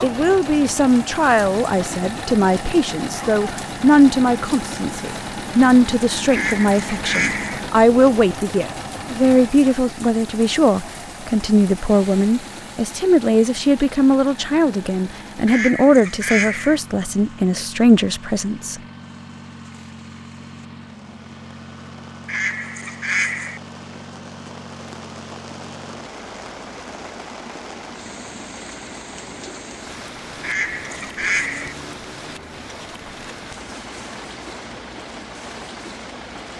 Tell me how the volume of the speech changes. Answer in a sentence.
The loudness of the speech stays about the same.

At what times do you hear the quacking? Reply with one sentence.
You can hear the quacking from 6.3 to 7.6 s, from 15.4 to 16.8 s, from 22.2 to 23.6 s and from 30.4 to 31.8 s.